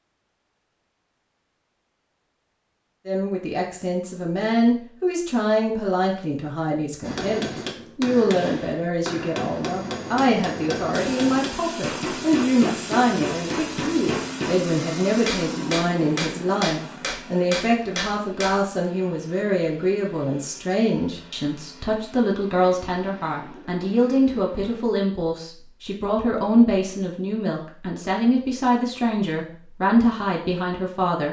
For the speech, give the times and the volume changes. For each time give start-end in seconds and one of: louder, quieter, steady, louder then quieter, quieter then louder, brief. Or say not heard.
3.0-31.2 steady.